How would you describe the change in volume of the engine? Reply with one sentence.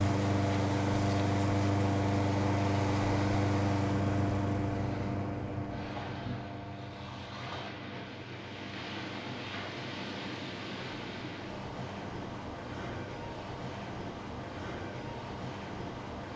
The loudness of the engine goes down.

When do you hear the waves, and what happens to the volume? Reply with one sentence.
You can hear the waves from 0.0 to 16.3 s, at a steady volume.